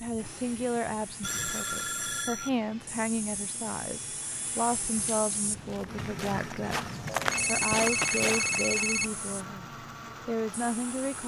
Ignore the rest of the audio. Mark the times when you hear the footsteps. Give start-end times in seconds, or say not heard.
4.9-8.8.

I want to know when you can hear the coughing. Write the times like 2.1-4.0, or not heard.
not heard.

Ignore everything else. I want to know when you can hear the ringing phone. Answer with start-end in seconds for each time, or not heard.
1.2-2.5, 7.1-9.1.